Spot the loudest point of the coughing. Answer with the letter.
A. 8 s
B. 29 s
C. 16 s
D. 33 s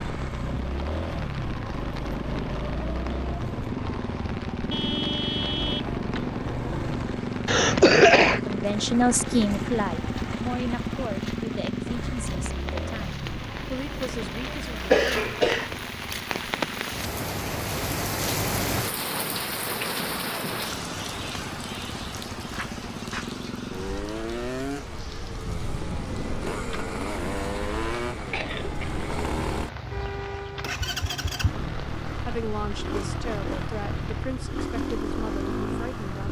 A.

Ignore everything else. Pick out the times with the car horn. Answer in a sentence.
You can hear the car horn from 4.7 to 6.4 s and from 29.9 to 30.8 s.